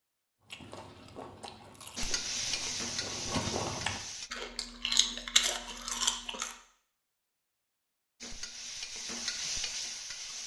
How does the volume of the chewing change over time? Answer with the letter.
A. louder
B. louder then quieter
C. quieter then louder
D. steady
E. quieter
A.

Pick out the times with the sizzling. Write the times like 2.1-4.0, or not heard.
1.9-4.3, 8.2-10.4.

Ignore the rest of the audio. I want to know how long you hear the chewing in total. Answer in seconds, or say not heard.
6 s.